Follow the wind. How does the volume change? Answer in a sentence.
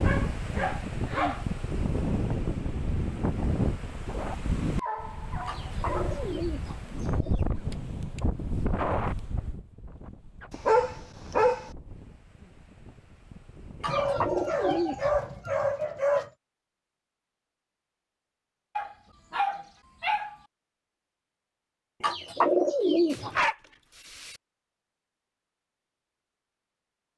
The loudness of the wind goes down.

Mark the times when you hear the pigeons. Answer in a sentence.
The pigeons can be heard from 5.5 to 7.5 s, from 13.8 to 15.1 s and from 22.0 to 23.3 s.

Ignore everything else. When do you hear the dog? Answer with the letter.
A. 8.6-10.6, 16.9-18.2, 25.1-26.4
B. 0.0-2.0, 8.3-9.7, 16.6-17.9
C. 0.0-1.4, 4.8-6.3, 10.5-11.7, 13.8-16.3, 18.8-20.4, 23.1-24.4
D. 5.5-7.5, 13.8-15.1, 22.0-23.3
C.